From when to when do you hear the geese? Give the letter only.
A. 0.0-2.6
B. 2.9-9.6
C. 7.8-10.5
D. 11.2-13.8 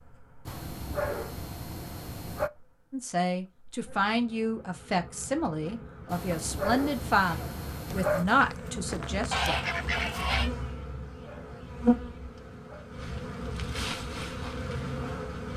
C.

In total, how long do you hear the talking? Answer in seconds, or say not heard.
7 s.